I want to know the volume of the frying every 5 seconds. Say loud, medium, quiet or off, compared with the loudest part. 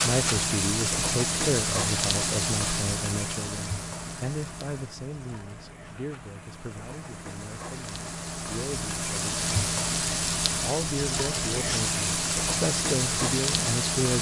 loud, medium, loud.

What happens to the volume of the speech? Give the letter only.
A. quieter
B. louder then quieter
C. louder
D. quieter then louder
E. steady
D.